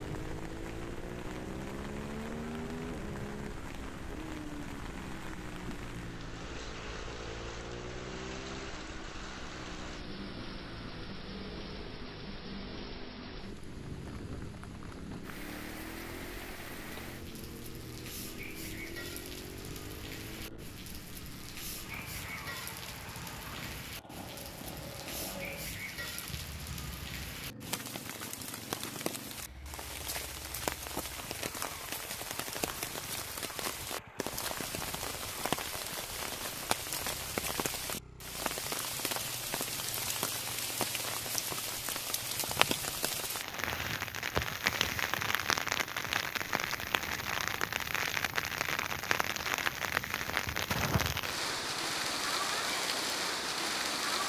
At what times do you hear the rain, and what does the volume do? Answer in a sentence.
You can hear the rain from 0.0 to 54.2 s, getting louder.